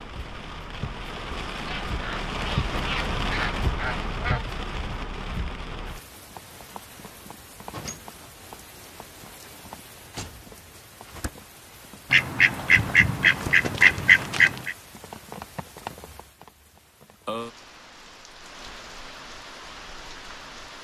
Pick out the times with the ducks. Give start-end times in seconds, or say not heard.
1.6-4.5, 12.1-14.8.